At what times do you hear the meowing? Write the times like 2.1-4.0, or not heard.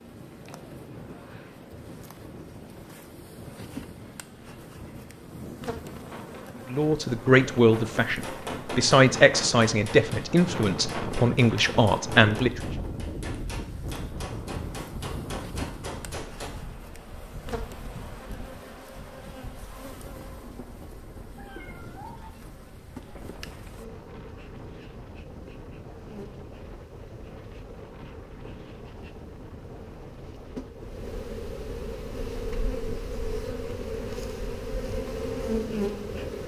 21.4-22.3.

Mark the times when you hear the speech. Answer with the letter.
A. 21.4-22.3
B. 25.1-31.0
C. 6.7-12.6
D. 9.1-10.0
C.